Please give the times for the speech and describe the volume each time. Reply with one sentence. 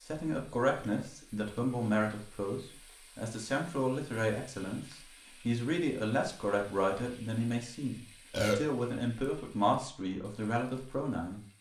The speech can be heard from 0.0 to 11.4 s, at a steady volume.